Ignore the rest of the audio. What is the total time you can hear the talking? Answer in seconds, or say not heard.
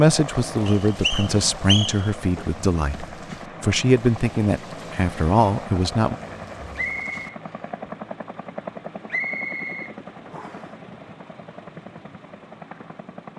6 s.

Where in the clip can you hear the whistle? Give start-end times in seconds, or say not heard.
0.7-2.1, 6.8-7.2, 9.1-10.7.